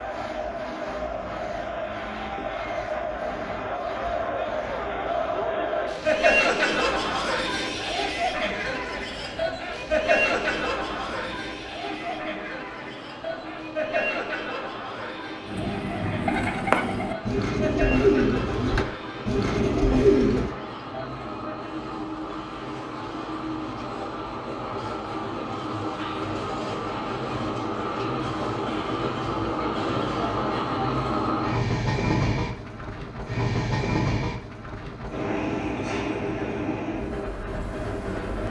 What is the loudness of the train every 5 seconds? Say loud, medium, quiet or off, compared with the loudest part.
quiet, quiet, quiet, quiet, medium, loud, loud, loud.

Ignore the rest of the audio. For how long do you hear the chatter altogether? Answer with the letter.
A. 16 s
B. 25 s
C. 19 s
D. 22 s
D.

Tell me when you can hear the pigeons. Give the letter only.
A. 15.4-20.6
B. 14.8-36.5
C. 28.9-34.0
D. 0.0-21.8
A.